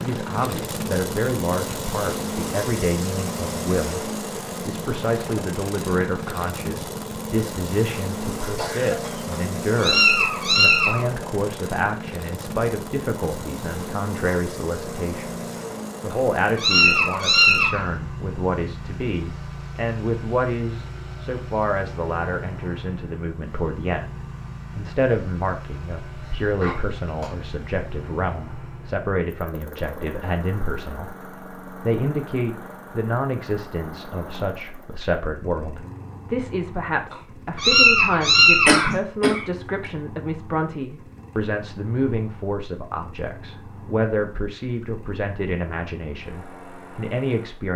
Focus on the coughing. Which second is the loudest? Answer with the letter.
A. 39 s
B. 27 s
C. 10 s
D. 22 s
A.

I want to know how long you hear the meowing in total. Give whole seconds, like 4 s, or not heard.
5 s.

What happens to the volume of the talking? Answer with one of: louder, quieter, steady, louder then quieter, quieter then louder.
steady.